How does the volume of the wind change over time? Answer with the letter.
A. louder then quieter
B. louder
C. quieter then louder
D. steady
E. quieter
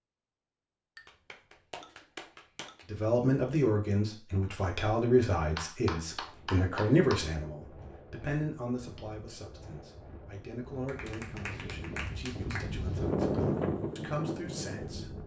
B.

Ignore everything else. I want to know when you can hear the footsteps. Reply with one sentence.
You can't hear the footsteps here.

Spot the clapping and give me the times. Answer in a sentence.
You can hear the clapping from 0.9 to 2.9 s, from 5.5 to 7.2 s and from 10.8 to 12.8 s.